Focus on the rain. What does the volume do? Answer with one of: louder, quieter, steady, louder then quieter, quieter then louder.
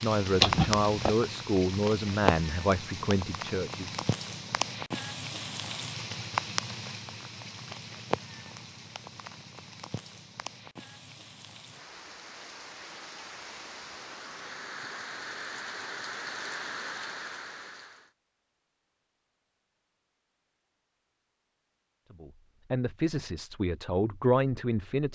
quieter then louder.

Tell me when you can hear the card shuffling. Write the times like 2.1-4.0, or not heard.
0.4-1.1.